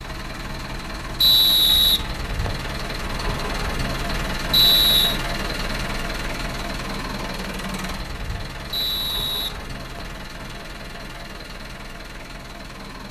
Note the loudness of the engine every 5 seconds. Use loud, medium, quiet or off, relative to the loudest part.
loud, loud, medium.